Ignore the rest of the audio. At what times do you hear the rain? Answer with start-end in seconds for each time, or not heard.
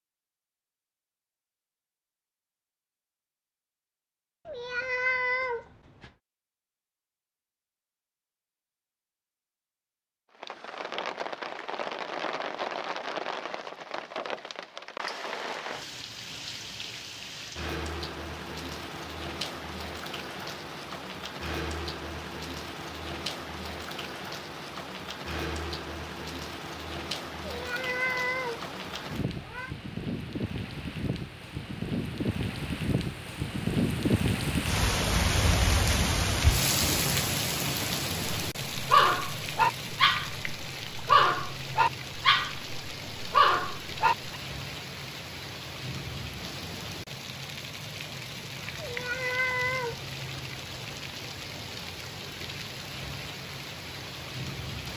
10.3-54.9.